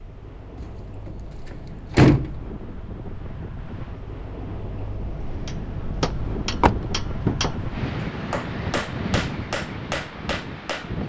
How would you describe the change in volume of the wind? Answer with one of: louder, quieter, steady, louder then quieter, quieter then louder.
louder.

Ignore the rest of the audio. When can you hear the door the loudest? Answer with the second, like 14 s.
2 s.